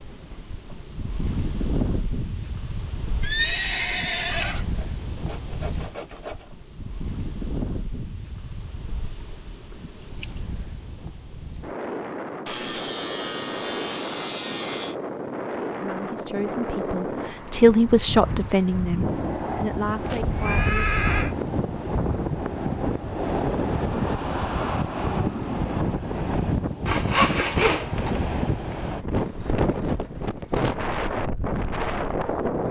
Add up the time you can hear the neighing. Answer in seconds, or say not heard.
3 s.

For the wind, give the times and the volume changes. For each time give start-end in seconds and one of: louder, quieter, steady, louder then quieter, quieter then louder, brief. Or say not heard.
0.0-32.6 louder.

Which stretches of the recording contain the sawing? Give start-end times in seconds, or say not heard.
4.6-6.5, 12.4-14.9, 26.9-28.2.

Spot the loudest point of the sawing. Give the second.
27 s.